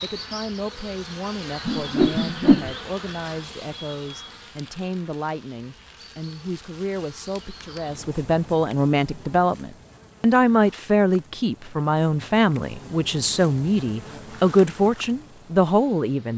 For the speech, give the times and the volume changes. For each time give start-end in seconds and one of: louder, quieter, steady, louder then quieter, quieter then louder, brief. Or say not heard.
0.0-16.3 louder.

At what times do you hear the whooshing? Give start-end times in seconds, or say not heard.
1.6-2.7.